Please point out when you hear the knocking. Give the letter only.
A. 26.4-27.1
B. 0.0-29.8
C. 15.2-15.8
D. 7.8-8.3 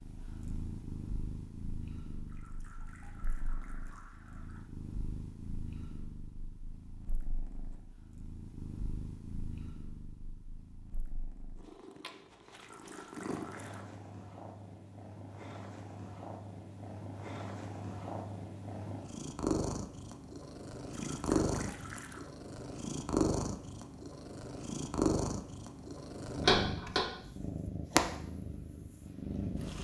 A.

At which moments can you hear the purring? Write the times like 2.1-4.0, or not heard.
0.0-29.8.